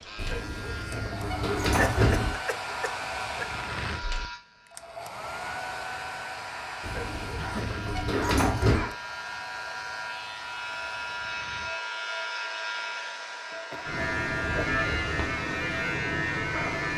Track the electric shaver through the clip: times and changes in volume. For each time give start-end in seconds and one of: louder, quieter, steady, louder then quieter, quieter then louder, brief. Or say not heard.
0.0-16.9 louder.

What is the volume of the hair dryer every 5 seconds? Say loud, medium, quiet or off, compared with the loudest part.
loud, loud, medium, medium.